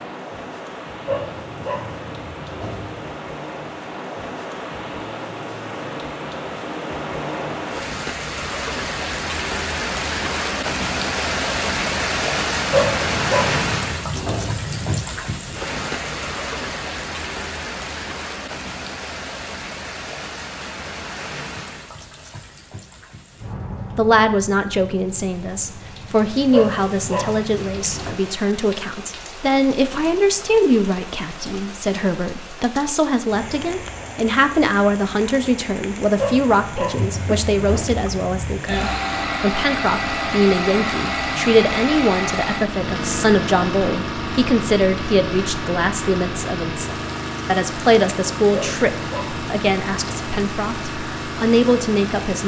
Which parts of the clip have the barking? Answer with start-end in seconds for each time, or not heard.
1.1-3.1, 12.7-15.1, 26.5-28.2, 36.1-38.7, 48.5-50.3.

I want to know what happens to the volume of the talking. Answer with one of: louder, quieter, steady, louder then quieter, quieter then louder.
steady.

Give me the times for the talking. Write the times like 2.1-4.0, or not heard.
23.9-52.4.